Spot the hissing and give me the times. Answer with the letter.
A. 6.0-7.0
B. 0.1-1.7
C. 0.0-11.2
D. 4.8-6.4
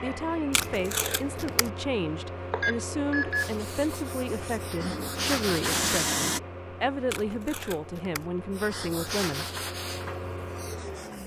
D.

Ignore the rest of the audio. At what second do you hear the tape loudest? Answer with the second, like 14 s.
1 s.